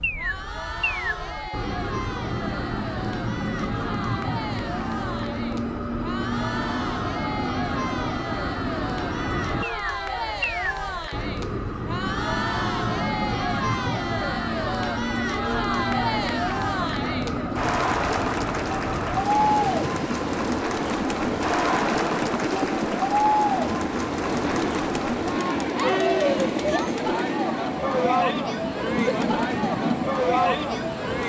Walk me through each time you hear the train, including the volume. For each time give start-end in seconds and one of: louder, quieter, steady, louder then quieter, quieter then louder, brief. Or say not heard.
0.0-31.2 steady.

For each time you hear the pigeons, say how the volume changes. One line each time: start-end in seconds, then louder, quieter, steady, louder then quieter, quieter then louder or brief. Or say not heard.
not heard.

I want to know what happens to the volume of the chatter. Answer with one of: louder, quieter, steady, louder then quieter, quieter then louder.
louder.